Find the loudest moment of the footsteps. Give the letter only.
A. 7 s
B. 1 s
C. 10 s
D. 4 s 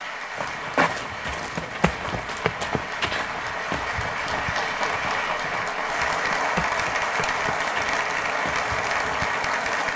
B.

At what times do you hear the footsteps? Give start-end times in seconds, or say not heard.
0.3-9.7.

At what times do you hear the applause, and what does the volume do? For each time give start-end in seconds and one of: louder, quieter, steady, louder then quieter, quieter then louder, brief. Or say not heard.
0.0-9.9 louder.